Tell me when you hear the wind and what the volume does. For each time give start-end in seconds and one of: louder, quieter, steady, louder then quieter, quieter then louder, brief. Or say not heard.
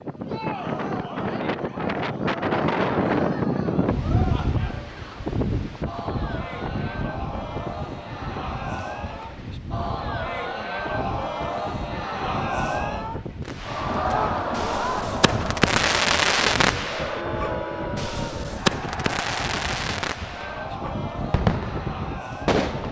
0.0-22.8 quieter.